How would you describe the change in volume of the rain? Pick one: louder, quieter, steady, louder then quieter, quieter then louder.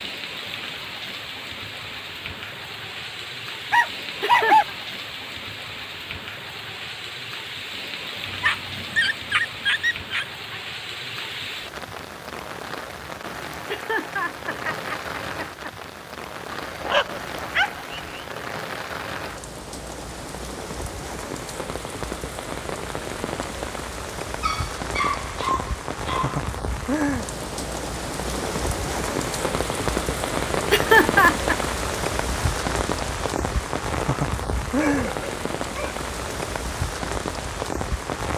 louder.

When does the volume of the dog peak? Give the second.
4 s.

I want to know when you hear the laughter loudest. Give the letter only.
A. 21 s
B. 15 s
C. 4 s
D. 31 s
D.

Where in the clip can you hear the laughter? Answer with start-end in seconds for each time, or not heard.
3.8-4.8, 13.7-15.7, 30.2-31.6.